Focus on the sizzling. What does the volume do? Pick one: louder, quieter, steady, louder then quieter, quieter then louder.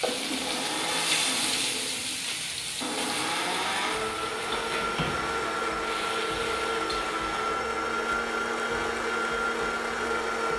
quieter.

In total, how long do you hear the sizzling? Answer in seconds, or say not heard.
7 s.